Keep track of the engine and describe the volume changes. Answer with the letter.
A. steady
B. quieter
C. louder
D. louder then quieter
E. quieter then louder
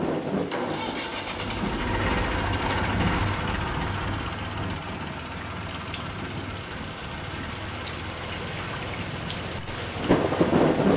B.